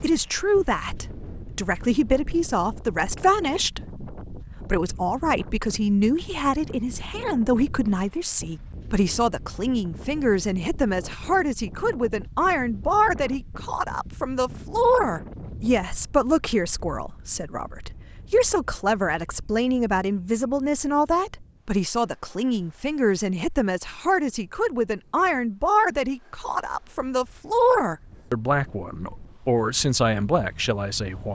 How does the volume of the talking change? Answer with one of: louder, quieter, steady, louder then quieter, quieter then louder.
steady.